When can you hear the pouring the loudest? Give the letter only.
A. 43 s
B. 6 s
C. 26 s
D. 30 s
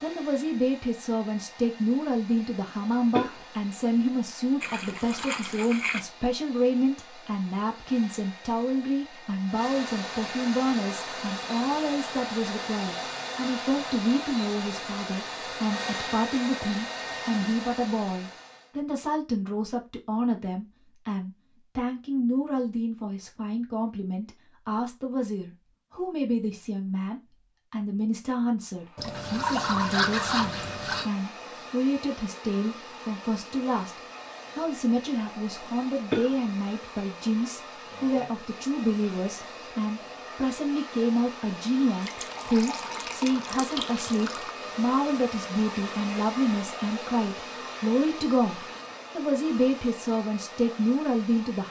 D.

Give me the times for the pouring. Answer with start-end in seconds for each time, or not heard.
4.6-6.0, 28.9-31.1, 42.0-44.5.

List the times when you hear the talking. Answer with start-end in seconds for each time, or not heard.
0.0-51.6.